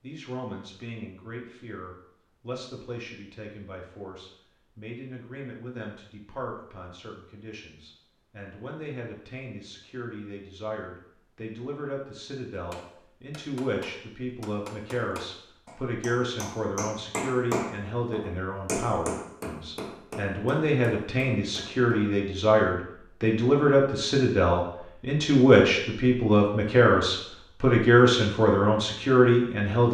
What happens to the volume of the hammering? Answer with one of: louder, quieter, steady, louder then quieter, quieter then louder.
louder then quieter.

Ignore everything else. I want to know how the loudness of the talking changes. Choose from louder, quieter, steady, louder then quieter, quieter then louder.
louder.